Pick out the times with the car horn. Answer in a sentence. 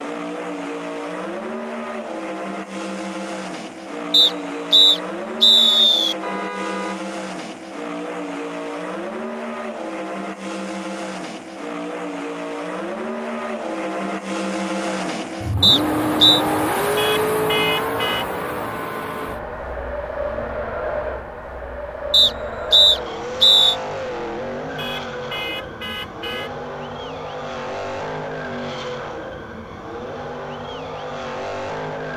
The car horn can be heard from 6.2 to 7.0 s, from 16.9 to 18.2 s and from 24.8 to 26.5 s.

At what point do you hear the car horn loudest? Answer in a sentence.
The volume of the car horn peaks at 18 seconds.